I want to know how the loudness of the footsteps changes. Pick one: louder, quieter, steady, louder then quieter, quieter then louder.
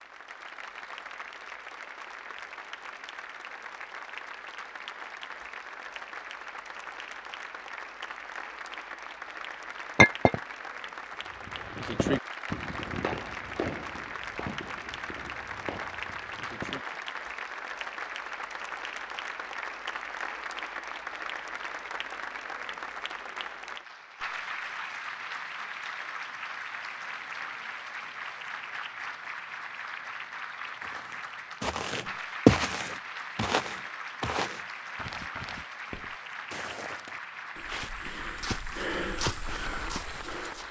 quieter then louder.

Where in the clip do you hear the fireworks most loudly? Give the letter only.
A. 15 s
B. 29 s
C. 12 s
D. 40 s
C.